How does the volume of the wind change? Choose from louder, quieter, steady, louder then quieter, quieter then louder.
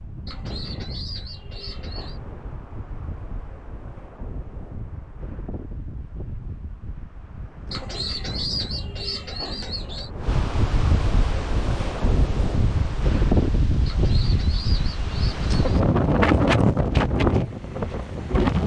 louder.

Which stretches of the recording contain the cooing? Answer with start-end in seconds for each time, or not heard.
0.2-2.2, 7.7-10.1, 13.8-15.6.